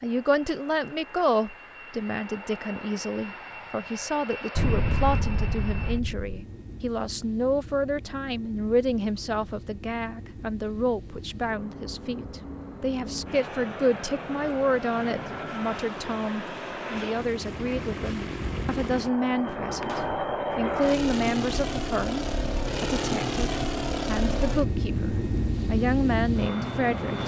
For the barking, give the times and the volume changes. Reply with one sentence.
You can't hear the barking here.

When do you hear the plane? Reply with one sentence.
The plane can be heard from 0.0 to 27.2 s.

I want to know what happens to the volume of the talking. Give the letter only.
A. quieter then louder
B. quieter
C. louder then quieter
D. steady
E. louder
D.